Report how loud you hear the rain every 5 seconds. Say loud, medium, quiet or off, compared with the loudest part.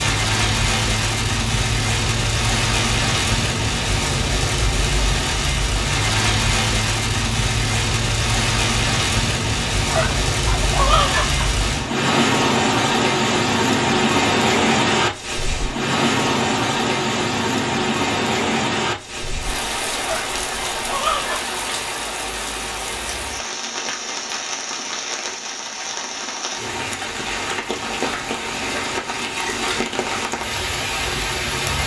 loud, loud, loud, loud, medium, medium, medium.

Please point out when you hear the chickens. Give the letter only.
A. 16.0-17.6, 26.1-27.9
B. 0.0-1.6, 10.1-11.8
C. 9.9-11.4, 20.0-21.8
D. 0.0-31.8
C.